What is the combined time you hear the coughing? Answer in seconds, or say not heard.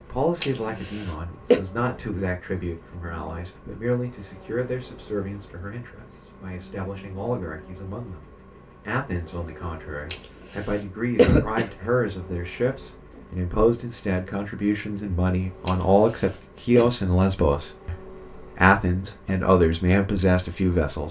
4 s.